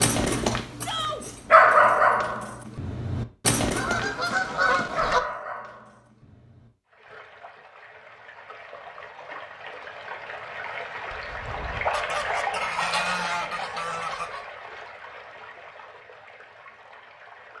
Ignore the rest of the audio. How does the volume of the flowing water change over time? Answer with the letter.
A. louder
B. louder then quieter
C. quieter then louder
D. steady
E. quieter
B.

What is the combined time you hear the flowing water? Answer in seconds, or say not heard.
11 s.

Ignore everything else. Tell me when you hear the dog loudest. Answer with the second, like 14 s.
2 s.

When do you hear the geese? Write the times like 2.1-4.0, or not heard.
3.7-5.2, 11.9-14.4.